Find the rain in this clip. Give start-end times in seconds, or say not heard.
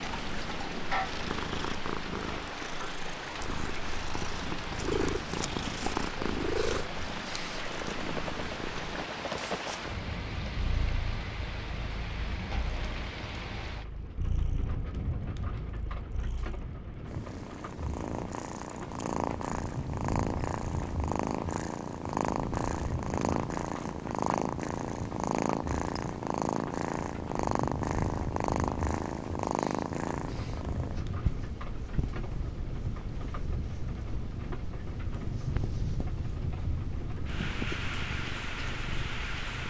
0.0-39.6.